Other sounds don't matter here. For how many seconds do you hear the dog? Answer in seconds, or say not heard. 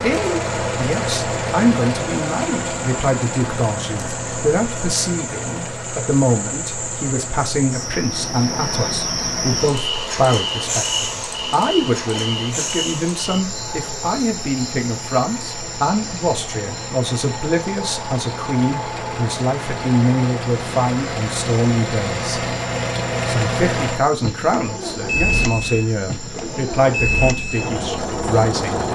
not heard.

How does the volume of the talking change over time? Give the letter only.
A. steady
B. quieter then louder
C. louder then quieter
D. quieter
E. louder
A.